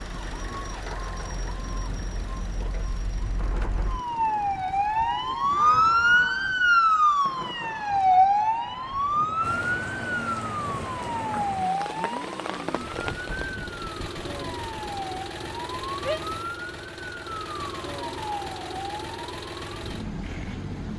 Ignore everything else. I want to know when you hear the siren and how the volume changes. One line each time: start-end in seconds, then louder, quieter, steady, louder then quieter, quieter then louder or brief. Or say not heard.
0.0-20.9 louder then quieter.